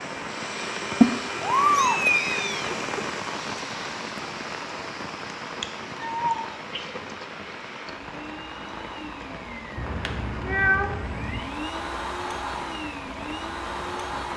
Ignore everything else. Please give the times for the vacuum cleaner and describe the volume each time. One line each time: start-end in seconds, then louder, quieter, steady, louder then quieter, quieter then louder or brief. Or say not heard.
0.0-14.3 quieter then louder.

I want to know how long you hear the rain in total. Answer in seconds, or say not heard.
14 s.